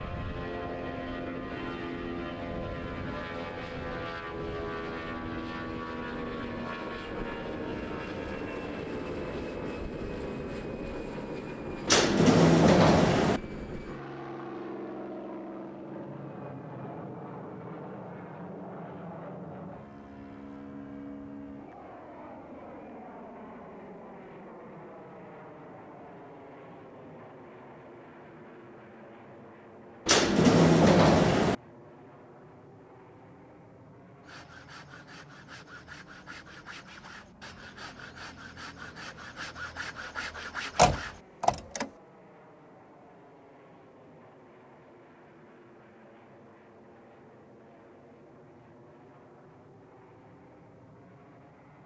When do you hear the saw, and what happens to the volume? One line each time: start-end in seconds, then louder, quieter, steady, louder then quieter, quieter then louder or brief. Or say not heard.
34.2-41.2 louder.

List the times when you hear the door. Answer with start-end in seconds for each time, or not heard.
11.8-13.4, 30.1-31.6, 40.8-41.9.